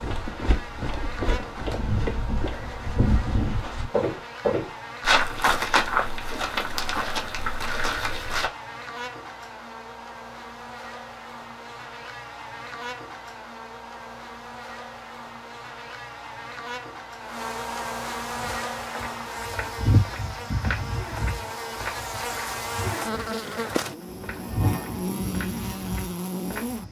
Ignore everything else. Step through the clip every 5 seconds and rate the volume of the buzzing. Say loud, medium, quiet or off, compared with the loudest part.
medium, medium, medium, loud, loud, loud.